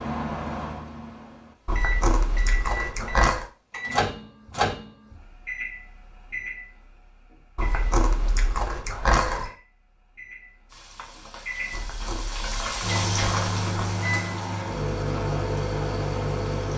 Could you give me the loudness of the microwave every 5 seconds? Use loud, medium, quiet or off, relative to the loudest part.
loud, medium, loud, loud.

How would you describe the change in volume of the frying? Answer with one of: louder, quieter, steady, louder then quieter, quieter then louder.
louder then quieter.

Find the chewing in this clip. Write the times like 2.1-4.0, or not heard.
1.6-3.5, 7.5-9.5, 11.7-13.9.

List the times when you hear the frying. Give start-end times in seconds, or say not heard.
10.7-16.7.